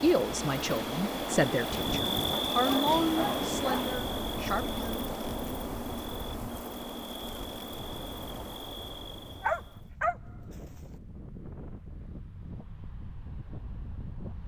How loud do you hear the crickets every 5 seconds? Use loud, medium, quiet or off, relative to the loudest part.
loud, medium, off.